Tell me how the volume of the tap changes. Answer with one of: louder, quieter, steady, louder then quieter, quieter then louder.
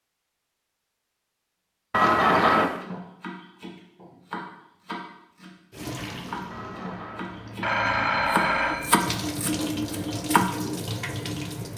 louder.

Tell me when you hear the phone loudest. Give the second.
2 s.